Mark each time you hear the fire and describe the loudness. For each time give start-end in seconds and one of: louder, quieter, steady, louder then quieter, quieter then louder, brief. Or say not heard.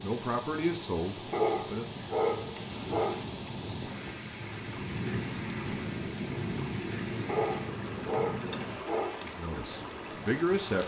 0.1-10.8 louder then quieter.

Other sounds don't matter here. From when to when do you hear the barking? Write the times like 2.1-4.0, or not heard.
1.3-3.2, 7.2-9.2.